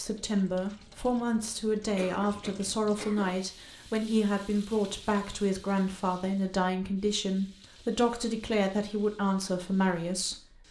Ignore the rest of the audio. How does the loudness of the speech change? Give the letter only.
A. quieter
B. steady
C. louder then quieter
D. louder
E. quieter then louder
B.